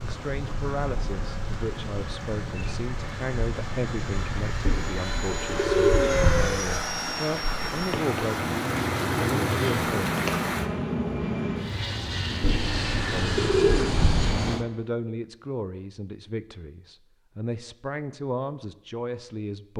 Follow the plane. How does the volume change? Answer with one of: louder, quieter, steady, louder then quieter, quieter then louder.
louder.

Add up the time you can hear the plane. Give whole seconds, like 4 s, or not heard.
15 s.